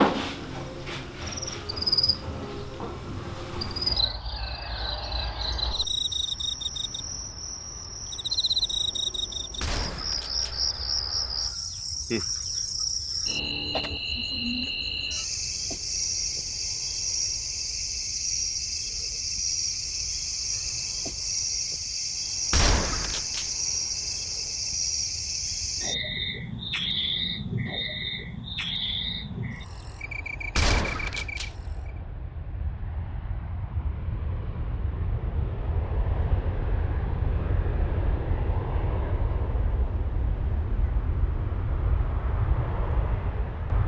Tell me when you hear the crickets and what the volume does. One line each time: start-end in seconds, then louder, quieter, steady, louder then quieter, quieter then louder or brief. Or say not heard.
0.0-32.0 steady.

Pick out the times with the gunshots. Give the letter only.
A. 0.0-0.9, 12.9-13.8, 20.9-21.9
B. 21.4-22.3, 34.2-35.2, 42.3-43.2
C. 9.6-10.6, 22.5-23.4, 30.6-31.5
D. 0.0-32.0
C.